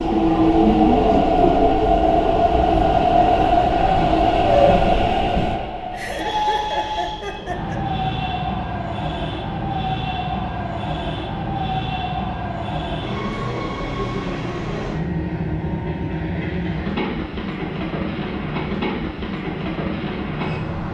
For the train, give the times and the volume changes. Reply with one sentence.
The train can be heard from 0.0 to 20.8 s, getting quieter.